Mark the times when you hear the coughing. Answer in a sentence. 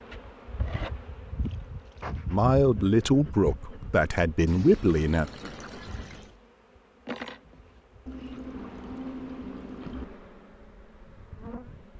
The coughing can't be heard in this clip.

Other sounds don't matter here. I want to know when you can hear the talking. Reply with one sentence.
The talking can be heard from 2.3 to 5.3 s.